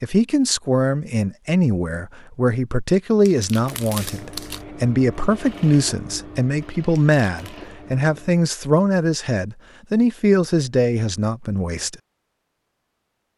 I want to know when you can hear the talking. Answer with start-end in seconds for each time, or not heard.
0.0-11.9.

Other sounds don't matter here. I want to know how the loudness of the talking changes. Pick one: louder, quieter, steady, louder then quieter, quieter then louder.
steady.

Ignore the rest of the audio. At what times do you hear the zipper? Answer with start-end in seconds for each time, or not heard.
not heard.